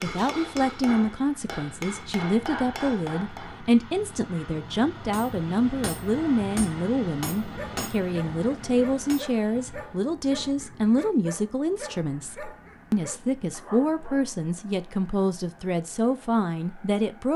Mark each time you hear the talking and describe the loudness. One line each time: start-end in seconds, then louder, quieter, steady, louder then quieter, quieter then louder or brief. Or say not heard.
0.0-17.3 steady.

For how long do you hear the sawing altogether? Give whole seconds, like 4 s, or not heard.
not heard.